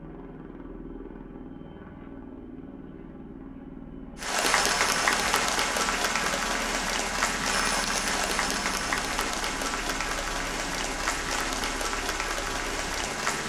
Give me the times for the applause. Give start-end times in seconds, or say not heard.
4.2-13.4.